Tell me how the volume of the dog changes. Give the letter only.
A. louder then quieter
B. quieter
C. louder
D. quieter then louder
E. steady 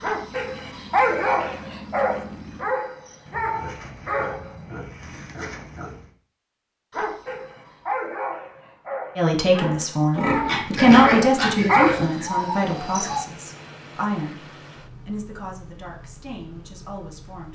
D.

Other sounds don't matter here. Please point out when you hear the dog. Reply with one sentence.
The dog can be heard from 0.0 to 4.5 s and from 6.9 to 13.2 s.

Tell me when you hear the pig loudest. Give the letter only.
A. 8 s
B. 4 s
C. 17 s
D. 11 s
D.